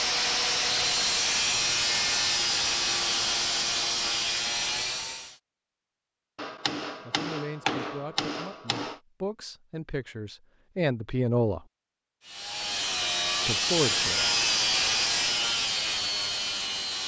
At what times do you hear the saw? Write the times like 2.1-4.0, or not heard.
0.0-5.4, 12.2-17.0.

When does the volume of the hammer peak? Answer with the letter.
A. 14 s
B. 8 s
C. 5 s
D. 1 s
B.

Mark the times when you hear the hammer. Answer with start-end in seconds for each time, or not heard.
6.3-9.0.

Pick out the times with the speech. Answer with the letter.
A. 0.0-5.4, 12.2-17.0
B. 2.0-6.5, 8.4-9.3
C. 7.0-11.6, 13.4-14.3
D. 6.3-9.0
C.